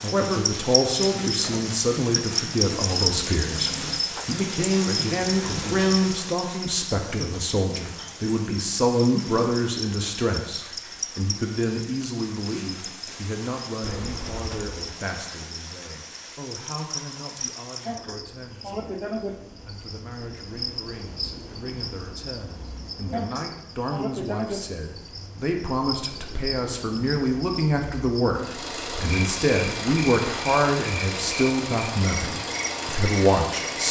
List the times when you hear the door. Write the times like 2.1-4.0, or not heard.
13.8-14.8.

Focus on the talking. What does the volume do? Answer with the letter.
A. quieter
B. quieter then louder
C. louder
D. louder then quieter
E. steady
B.